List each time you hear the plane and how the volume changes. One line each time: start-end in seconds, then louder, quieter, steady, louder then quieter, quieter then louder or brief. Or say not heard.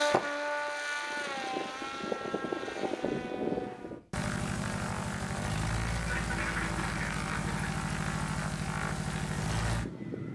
0.0-10.3 steady.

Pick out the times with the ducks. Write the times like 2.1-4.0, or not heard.
6.0-7.7.